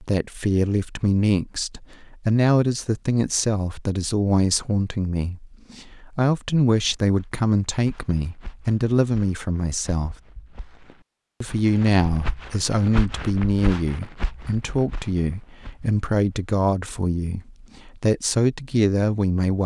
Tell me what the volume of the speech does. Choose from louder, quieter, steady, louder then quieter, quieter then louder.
steady.